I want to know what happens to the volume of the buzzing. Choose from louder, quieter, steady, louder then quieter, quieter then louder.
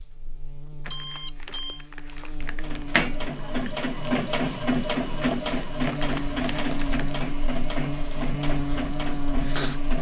louder.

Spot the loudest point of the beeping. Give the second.
1 s.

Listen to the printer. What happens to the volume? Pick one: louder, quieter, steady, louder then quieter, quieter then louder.
quieter.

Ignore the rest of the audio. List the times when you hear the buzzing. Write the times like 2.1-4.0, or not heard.
0.0-9.9.